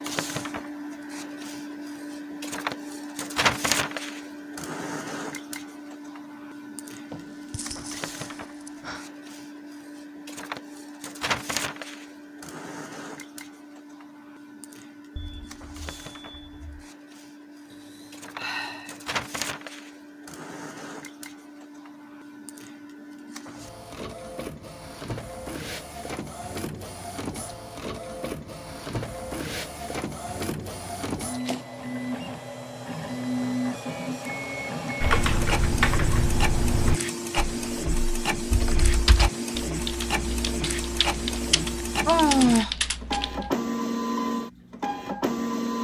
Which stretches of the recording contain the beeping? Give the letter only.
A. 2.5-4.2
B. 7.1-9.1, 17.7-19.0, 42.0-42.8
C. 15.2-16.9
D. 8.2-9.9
C.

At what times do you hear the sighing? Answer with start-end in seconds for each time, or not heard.
7.1-9.1, 17.7-19.0, 42.0-42.8.